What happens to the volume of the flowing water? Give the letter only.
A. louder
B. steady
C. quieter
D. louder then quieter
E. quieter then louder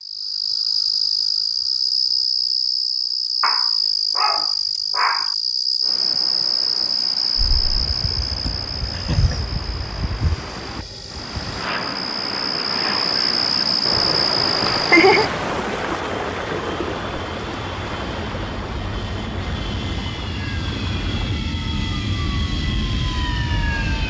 D.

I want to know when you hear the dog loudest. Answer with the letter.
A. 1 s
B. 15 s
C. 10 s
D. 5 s
D.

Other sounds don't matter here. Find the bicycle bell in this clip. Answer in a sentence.
You can't hear the bicycle bell here.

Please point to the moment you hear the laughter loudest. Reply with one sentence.
The volume of the laughter peaks at 15 seconds.